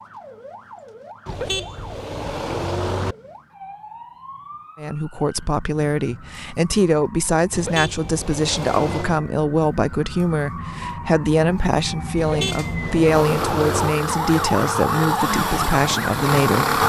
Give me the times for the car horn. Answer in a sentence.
The car horn can be heard from 1.2 to 3.1 s, from 7.5 to 9.2 s and from 12.2 to 13.9 s.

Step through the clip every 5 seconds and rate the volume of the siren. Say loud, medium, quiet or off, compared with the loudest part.
quiet, quiet, medium, loud.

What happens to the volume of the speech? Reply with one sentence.
The volume of the speech stays about the same.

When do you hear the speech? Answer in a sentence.
You can hear the speech from 4.8 to 16.8 s.